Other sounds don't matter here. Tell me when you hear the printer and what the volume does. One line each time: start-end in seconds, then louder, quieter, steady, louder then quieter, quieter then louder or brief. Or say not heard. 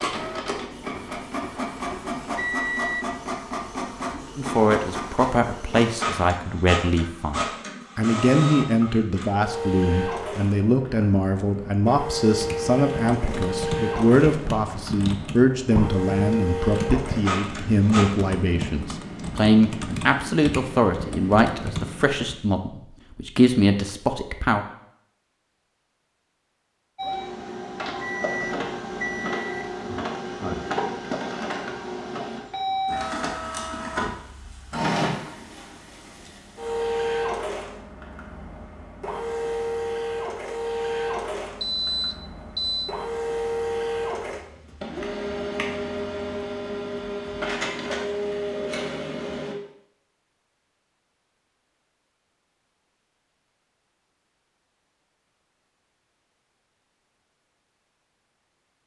0.0-18.1 steady
26.9-49.5 steady.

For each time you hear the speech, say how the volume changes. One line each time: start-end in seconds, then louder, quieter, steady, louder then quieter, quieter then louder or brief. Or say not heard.
4.3-24.6 steady.